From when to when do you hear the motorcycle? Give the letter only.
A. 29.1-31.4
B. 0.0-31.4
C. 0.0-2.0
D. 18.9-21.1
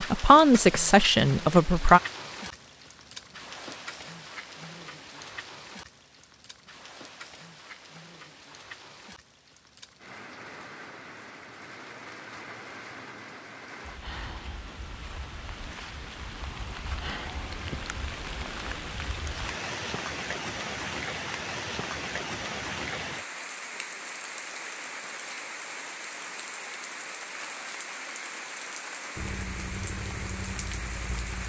A.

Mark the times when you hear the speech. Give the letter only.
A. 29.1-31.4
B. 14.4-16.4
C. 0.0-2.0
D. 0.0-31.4
C.